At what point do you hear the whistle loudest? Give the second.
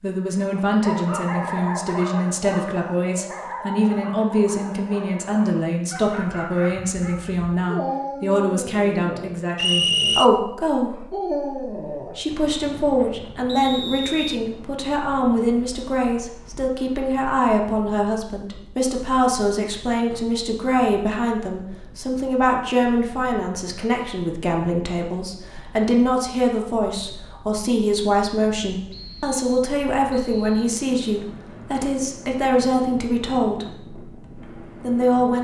10 s.